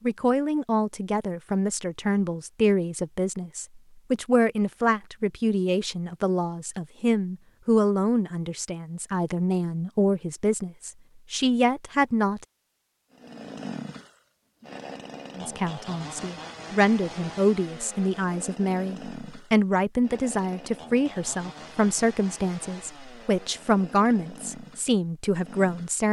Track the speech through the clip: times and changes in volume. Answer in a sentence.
The speech can be heard from 0.0 to 12.4 s, at a steady volume; and from 15.3 to 26.0 s, at a steady volume.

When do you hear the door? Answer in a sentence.
You can't hear the door here.